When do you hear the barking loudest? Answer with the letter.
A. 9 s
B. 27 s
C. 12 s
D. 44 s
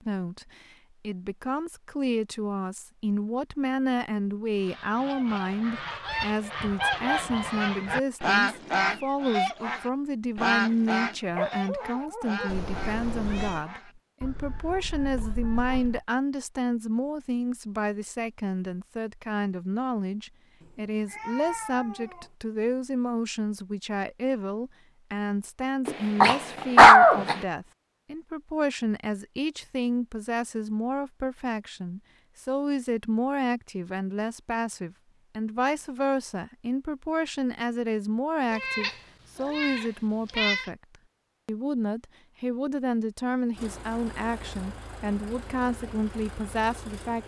B.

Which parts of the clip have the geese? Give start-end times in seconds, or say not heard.
4.5-16.1.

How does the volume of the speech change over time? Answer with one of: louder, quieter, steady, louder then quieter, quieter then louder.
steady.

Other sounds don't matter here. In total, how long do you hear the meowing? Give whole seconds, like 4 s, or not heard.
5 s.